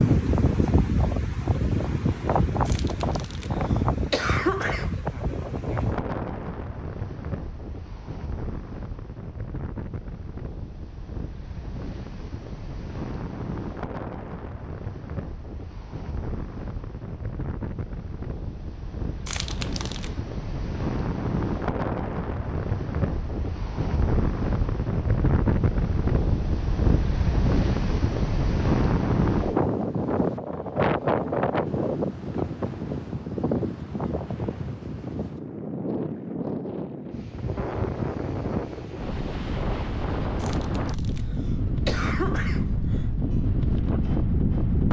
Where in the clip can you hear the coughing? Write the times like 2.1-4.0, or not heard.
2.6-5.0, 19.2-20.1, 40.4-43.0.